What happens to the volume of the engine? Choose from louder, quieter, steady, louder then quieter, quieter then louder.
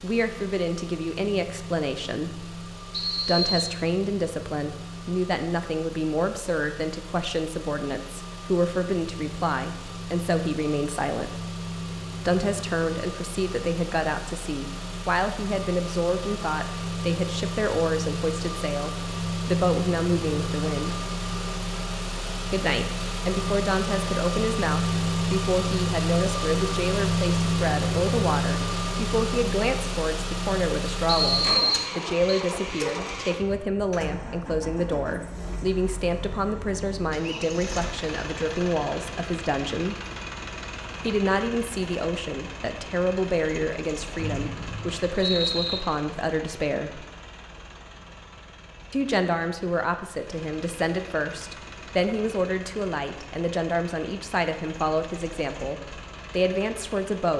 louder then quieter.